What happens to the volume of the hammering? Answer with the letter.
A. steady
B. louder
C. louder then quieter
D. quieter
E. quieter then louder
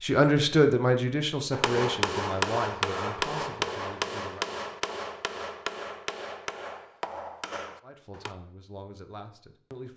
D.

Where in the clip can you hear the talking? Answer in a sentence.
The talking can be heard from 0.0 to 4.5 s and from 7.8 to 9.9 s.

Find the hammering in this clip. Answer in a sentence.
You can hear the hammering from 1.5 to 8.3 s.